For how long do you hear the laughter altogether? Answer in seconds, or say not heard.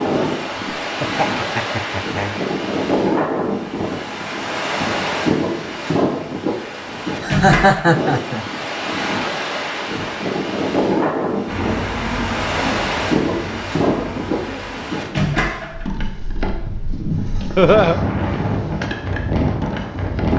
3 s.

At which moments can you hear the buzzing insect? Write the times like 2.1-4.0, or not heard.
11.4-20.3.